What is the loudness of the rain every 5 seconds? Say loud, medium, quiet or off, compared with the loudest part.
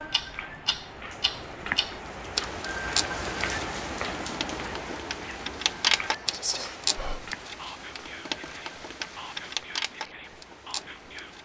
loud, medium, quiet.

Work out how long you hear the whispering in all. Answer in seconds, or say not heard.
5 s.